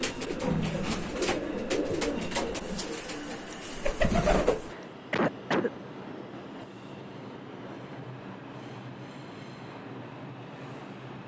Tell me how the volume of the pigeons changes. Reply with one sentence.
The volume of the pigeons goes down, then up.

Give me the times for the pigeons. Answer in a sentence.
The pigeons can be heard from 0.0 to 4.8 s.